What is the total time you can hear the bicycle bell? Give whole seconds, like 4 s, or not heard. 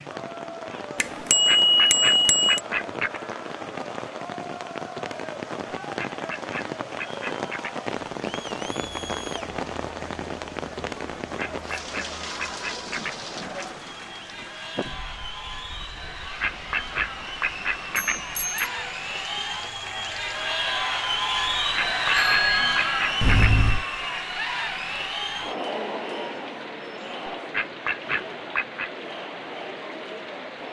4 s.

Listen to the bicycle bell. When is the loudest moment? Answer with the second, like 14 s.
2 s.